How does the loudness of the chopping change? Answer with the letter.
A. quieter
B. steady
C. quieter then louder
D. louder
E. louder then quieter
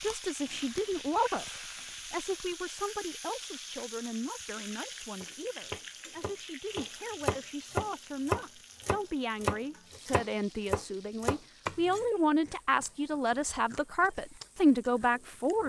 D.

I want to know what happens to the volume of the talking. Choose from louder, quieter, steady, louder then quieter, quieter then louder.
quieter then louder.